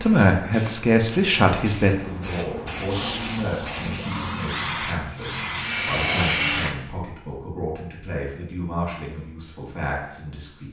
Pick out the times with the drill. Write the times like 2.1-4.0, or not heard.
2.9-6.8.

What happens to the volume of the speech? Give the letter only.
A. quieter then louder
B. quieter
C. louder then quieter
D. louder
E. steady
B.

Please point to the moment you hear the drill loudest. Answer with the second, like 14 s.
6 s.